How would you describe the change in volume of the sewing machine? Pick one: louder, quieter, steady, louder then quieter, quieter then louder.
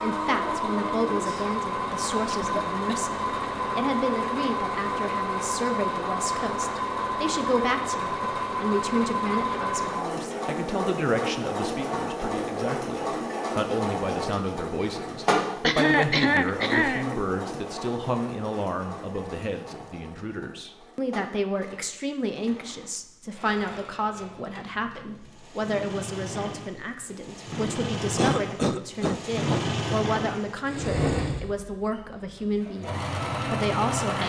quieter then louder.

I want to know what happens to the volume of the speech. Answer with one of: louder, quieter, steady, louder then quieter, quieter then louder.
steady.